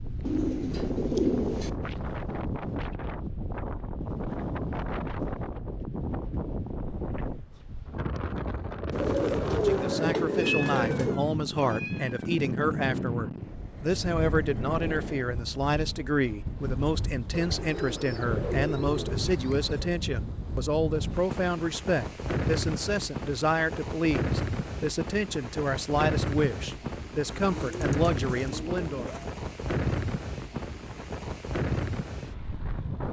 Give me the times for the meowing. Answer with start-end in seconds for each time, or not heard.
10.3-12.2.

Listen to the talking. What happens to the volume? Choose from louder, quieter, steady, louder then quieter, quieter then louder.
steady.